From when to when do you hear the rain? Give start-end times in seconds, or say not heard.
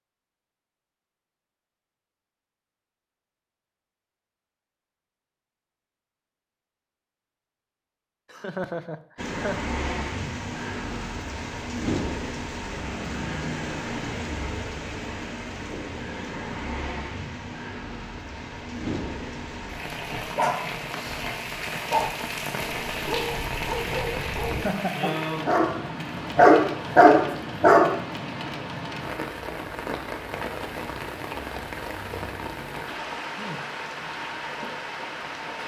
9.2-35.6.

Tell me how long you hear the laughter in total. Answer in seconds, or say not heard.
2 s.